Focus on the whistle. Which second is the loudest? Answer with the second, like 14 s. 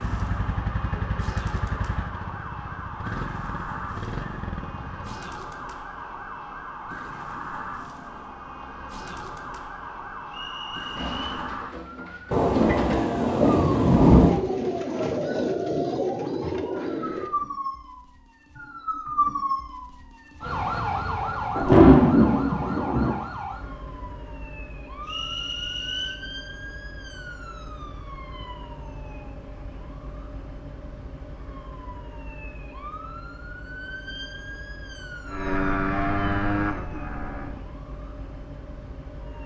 26 s.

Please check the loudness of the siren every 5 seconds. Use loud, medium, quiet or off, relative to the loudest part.
medium, medium, medium, loud, loud, medium, medium, medium.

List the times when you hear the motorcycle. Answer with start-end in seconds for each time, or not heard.
0.0-5.2, 35.2-37.6.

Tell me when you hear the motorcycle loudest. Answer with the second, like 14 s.
36 s.